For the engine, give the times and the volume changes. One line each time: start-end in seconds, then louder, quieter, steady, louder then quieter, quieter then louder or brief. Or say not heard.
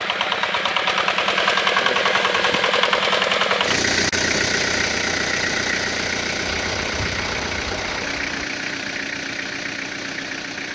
0.0-10.6 quieter.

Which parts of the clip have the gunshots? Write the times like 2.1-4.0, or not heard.
6.5-8.4.